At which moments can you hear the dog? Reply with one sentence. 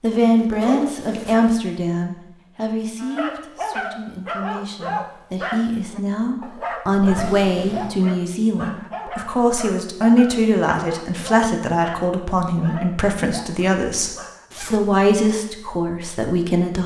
You can hear the dog from 3.0 to 14.4 s.